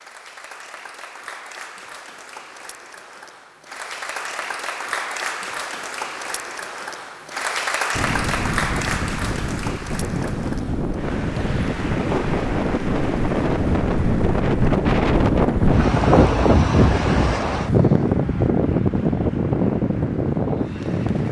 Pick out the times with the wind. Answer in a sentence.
The wind can be heard from 7.9 to 21.2 s.